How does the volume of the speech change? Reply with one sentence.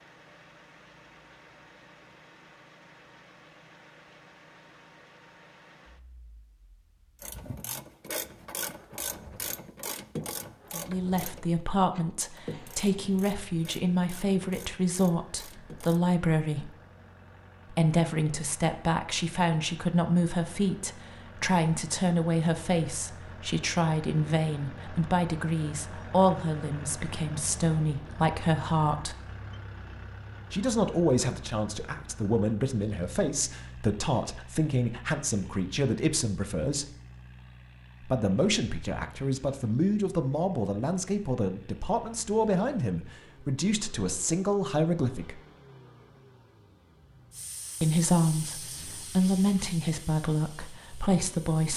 The loudness of the speech stays about the same.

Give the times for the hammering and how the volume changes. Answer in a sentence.
You can't hear the hammering here.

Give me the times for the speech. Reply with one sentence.
The speech can be heard from 10.7 to 16.8 s, from 17.7 to 29.1 s, from 30.5 to 36.9 s, from 38.0 to 45.4 s and from 47.8 to 51.7 s.